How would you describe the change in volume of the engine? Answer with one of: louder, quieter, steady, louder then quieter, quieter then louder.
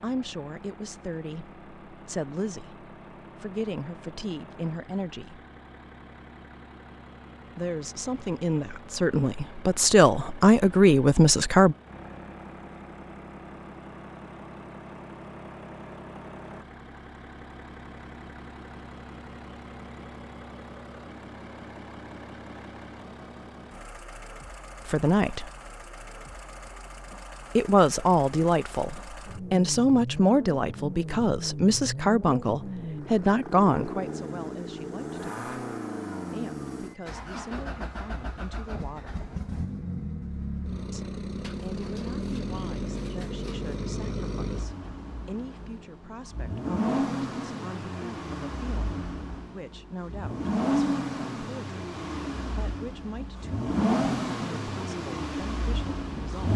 louder.